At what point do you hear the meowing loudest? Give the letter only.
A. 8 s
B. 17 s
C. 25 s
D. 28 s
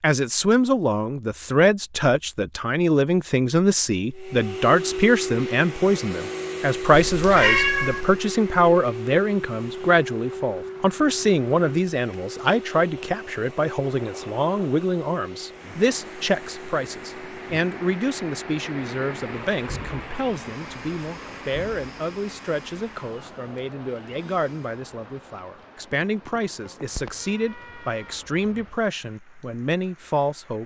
A.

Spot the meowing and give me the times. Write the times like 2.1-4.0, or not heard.
6.9-8.2, 26.9-28.2.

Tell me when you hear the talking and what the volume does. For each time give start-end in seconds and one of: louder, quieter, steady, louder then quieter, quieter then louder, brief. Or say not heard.
0.0-30.6 quieter.